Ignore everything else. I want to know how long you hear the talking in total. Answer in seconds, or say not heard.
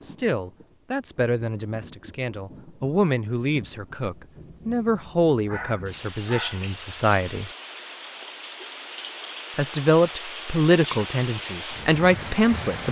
11 s.